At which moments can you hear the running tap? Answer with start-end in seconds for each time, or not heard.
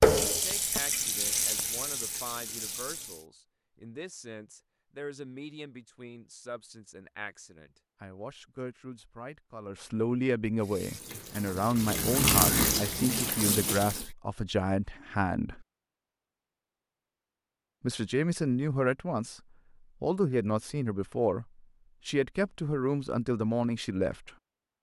0.0-3.2, 10.6-14.1.